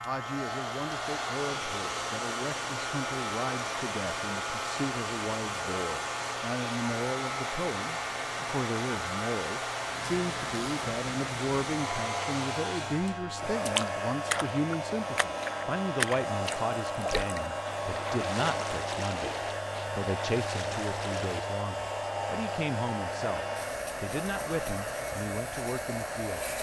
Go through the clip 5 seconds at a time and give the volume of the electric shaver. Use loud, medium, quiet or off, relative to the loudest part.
loud, loud, loud, loud, loud, medium.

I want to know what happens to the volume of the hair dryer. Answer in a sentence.
The volume of the hair dryer stays about the same.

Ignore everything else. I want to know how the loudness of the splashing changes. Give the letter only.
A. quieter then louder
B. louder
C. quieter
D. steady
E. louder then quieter
C.